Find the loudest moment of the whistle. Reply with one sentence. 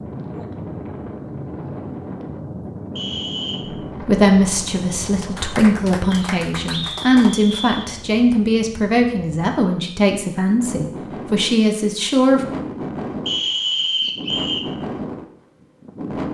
The volume of the whistle peaks at 14 seconds.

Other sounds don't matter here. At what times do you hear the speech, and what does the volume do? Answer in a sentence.
You can hear the speech from 3.9 to 12.4 s, at a steady volume.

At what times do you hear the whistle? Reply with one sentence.
The whistle can be heard from 3.0 to 3.6 s, from 6.1 to 7.9 s and from 13.2 to 14.7 s.